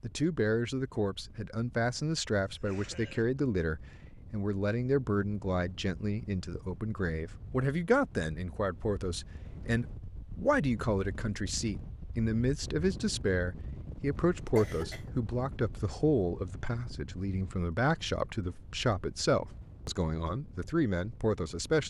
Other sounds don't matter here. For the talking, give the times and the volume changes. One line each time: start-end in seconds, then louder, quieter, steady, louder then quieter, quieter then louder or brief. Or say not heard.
0.0-21.8 steady.